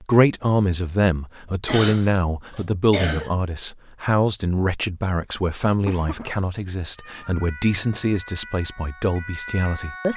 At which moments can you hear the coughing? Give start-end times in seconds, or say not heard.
1.6-3.3, 5.8-6.4.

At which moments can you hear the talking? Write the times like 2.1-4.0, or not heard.
0.0-10.1.